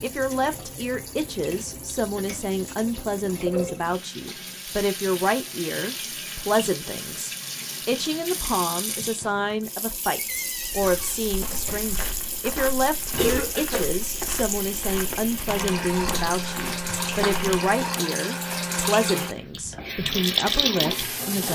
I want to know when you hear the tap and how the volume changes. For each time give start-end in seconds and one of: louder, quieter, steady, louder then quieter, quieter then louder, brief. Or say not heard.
0.0-21.5 louder.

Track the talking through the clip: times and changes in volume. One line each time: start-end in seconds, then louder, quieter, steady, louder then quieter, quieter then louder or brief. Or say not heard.
0.0-21.5 steady.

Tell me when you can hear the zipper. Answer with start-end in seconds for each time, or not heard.
not heard.